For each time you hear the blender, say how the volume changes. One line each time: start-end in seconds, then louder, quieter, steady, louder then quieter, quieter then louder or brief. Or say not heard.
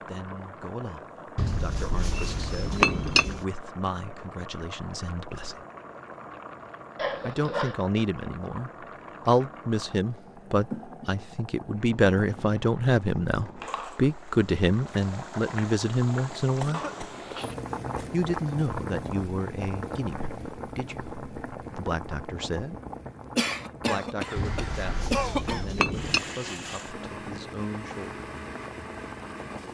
24.1-29.7 steady.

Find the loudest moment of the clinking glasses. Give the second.
3 s.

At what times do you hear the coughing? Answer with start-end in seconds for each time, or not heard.
7.0-7.8, 16.6-18.1, 23.4-25.8.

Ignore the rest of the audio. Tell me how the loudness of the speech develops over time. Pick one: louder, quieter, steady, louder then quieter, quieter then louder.
louder then quieter.